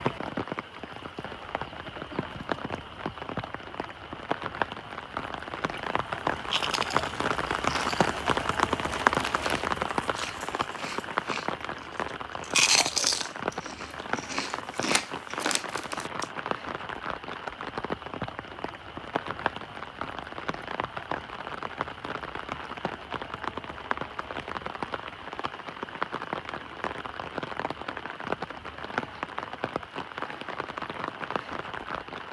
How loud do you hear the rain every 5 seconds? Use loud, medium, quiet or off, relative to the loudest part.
medium, loud, medium, medium, medium, medium, medium.